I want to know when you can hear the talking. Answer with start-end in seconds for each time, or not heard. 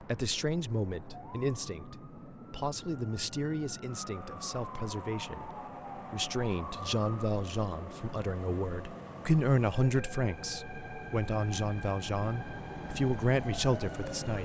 0.0-14.4.